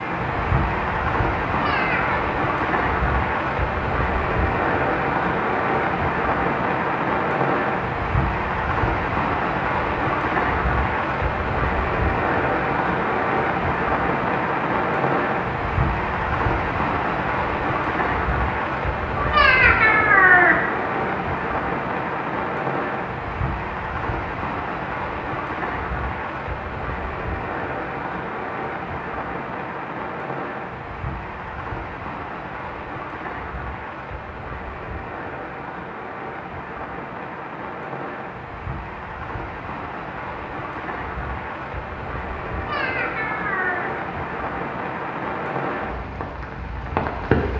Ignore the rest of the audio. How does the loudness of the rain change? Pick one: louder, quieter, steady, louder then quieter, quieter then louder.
quieter.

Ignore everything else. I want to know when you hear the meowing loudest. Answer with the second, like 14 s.
20 s.